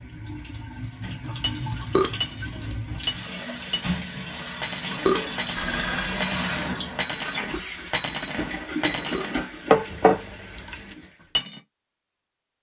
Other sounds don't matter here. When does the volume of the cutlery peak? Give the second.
10 s.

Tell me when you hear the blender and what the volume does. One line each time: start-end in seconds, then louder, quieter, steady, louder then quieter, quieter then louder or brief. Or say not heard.
not heard.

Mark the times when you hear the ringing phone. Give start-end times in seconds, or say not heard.
5.5-6.2.